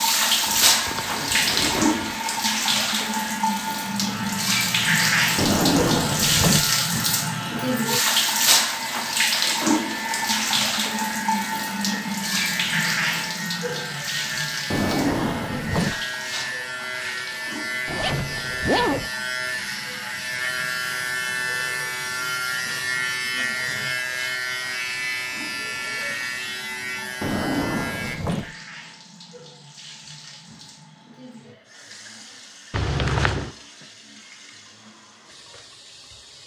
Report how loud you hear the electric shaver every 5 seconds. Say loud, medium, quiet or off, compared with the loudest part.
medium, medium, medium, loud, loud, loud, off, off.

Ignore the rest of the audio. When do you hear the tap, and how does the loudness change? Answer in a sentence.
You can hear the tap from 0.0 to 36.4 s, getting quieter.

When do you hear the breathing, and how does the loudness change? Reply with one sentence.
The breathing can't be heard in this clip.